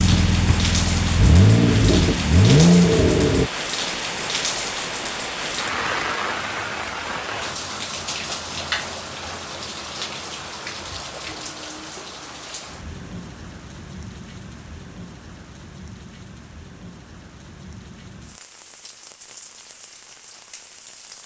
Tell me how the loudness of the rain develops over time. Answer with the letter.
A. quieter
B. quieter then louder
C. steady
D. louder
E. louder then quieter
A.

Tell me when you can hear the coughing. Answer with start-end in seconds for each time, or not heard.
not heard.